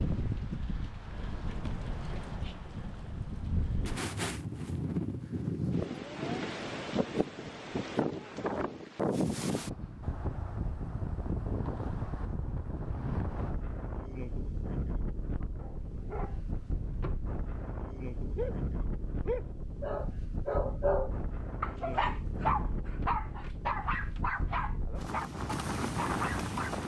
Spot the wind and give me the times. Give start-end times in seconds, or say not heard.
0.0-26.8.